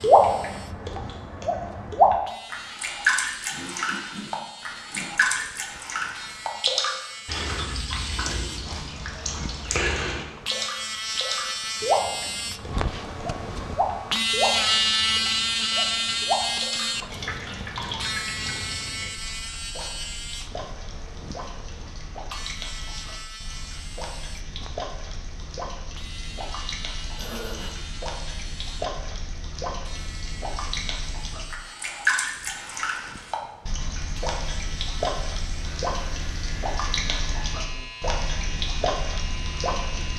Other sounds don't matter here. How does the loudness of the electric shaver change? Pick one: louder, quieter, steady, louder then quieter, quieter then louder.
louder then quieter.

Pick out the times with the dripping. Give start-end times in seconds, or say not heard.
0.0-40.1.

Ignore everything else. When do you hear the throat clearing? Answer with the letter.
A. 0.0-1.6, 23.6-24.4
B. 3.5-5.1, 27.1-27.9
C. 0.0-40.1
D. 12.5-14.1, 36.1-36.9
B.